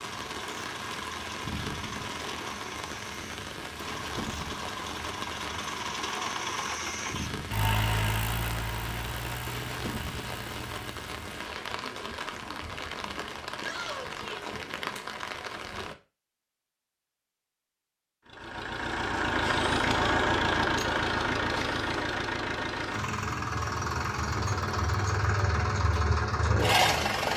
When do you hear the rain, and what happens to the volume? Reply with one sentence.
The rain can be heard from 0.0 to 15.9 s, at a steady volume.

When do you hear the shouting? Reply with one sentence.
The shouting can be heard from 13.6 to 14.6 s.